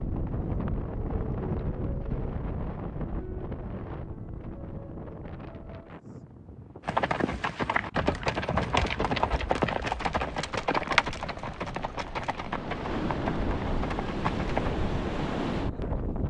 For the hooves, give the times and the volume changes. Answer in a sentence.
You can hear the hooves from 6.8 to 14.8 s, getting quieter.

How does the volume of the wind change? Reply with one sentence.
The loudness of the wind goes down, then up.